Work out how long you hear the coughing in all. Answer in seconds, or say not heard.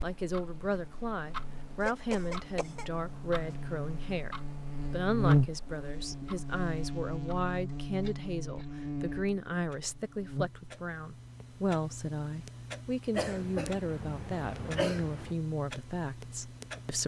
3 s.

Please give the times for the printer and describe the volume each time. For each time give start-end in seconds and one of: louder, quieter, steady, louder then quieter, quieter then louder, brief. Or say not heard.
not heard.